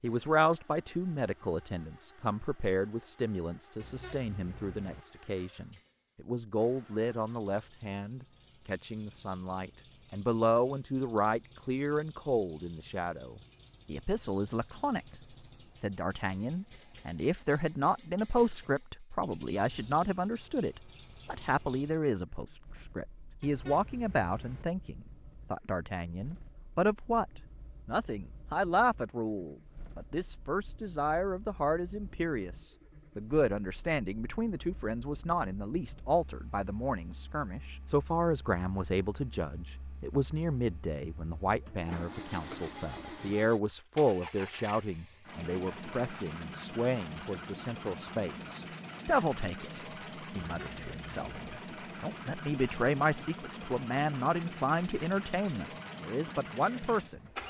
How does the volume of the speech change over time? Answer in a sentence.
The loudness of the speech stays about the same.